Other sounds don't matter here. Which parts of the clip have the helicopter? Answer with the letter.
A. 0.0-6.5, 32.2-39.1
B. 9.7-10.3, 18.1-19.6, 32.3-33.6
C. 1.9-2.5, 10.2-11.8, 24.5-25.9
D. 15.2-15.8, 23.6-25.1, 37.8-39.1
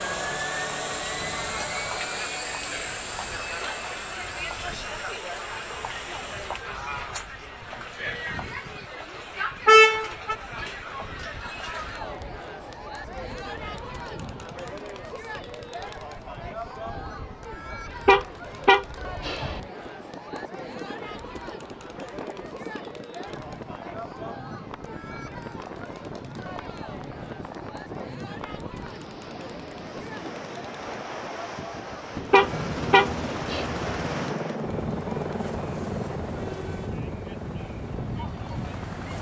A.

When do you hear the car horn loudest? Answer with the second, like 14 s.
10 s.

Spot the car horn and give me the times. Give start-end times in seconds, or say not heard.
9.7-10.3, 18.1-19.6, 32.3-33.6.